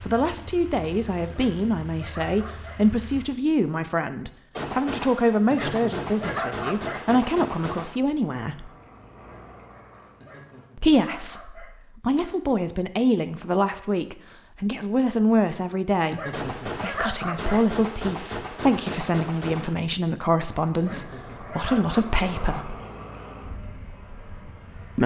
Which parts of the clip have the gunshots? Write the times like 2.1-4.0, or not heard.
4.5-8.0, 16.3-19.8.